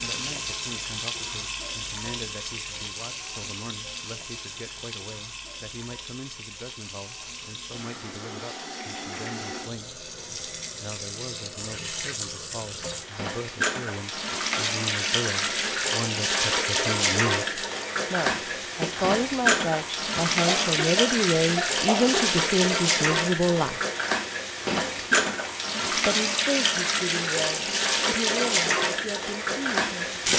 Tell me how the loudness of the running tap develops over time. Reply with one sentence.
The volume of the running tap goes up.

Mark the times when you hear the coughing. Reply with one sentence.
You can hear the coughing from 20.4 to 22.3 s.